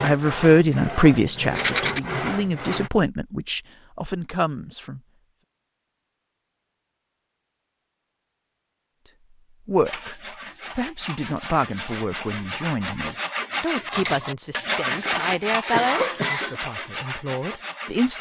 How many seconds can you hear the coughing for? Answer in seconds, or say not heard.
2 s.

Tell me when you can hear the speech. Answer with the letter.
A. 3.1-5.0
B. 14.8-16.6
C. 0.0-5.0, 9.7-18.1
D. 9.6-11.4
C.